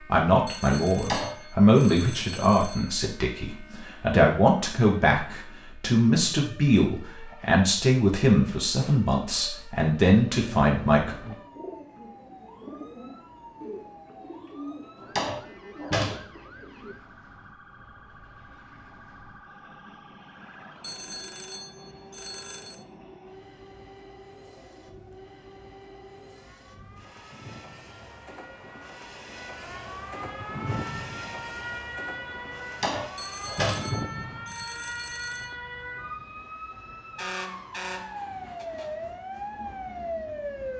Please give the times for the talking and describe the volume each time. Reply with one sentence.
You can hear the talking from 0.0 to 11.2 s, at a steady volume.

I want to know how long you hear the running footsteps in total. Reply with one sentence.
You can't hear the running footsteps here.